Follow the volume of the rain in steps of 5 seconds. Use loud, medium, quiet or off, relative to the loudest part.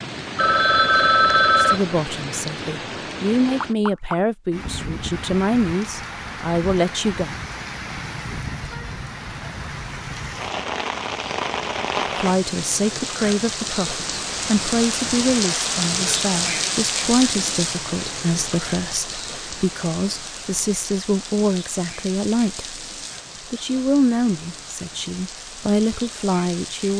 medium, medium, loud, loud, medium, medium.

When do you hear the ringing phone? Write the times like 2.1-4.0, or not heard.
0.3-1.8.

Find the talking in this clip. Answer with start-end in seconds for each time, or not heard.
1.6-7.3, 12.2-22.8, 23.5-26.9.